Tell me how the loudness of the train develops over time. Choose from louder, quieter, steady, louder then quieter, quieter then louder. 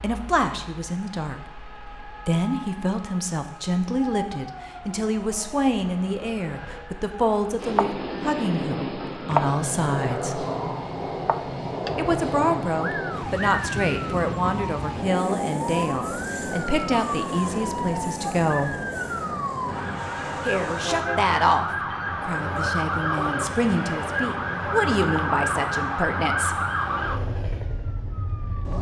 quieter.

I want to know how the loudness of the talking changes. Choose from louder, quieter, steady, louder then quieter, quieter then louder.
steady.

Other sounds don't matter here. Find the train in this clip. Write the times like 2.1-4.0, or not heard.
7.5-28.7.